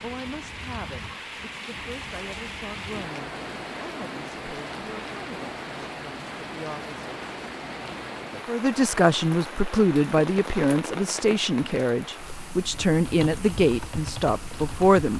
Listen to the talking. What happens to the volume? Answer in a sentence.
The loudness of the talking goes up.